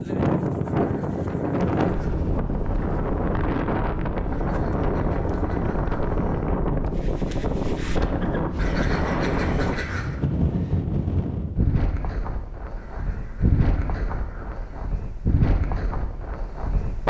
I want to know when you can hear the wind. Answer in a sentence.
The wind can be heard from 0.0 to 17.0 s.